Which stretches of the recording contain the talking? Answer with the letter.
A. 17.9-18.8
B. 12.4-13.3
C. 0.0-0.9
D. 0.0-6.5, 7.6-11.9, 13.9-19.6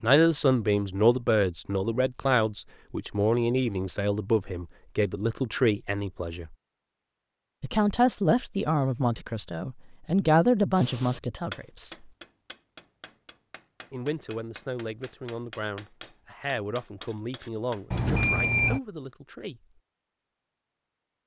D.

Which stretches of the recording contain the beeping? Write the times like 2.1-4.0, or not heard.
17.9-18.8.